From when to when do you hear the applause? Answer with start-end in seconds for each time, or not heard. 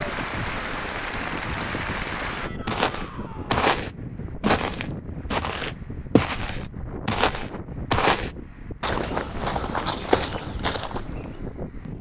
0.0-2.5.